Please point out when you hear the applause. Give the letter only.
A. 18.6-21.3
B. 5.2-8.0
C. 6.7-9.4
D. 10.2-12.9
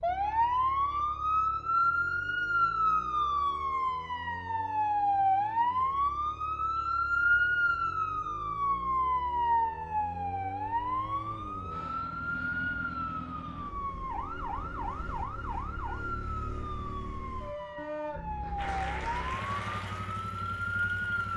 A.